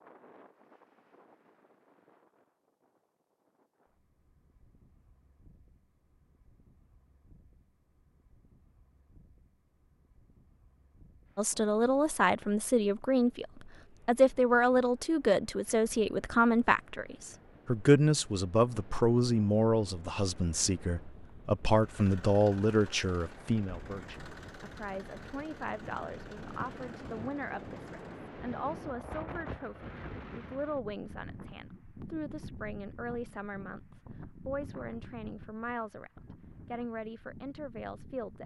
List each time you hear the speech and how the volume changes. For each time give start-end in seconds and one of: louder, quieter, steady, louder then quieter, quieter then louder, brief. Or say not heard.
11.3-38.4 quieter.